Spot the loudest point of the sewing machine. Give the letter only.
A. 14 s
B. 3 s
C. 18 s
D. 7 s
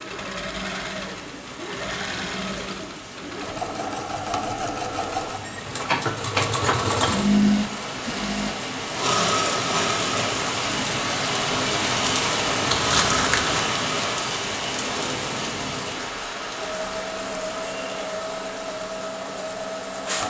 D.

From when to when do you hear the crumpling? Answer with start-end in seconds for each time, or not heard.
12.7-13.7.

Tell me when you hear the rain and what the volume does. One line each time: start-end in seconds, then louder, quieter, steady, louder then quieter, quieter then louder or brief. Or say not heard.
0.0-20.2 louder then quieter.